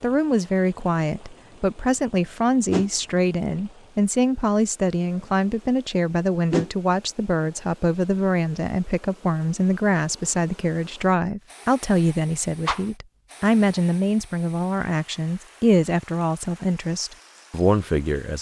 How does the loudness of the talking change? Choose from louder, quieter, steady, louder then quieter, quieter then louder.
steady.